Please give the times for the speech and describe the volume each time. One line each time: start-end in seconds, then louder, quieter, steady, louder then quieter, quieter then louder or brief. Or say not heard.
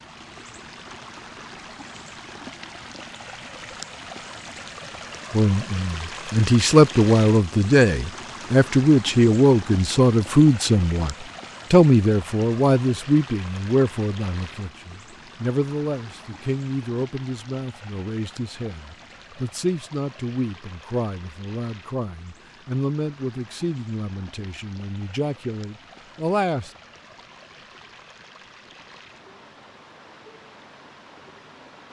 5.3-26.7 quieter.